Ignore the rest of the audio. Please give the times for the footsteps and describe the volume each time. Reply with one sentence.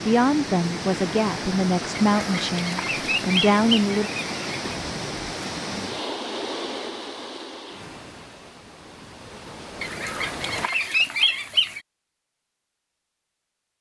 You can't hear the footsteps here.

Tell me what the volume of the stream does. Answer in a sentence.
The loudness of the stream goes down.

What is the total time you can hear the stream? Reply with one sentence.
The stream can be heard for 11 seconds in total.